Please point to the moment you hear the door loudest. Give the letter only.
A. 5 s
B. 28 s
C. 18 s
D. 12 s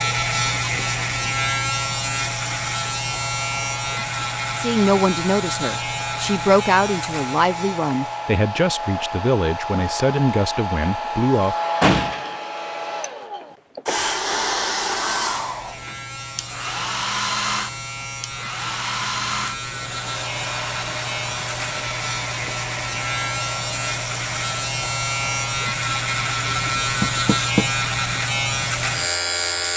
D.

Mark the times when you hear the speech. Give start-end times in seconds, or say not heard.
4.5-11.6.